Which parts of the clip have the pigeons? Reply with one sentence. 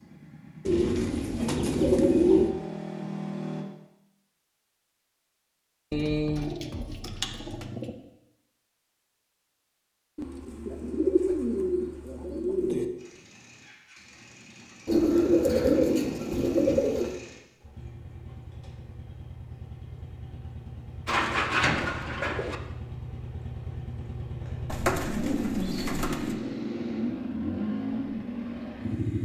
You can hear the pigeons from 0.7 to 2.5 s, from 5.9 to 8.0 s, from 10.2 to 12.8 s, from 14.8 to 17.1 s, from 21.1 to 22.6 s and from 24.6 to 26.4 s.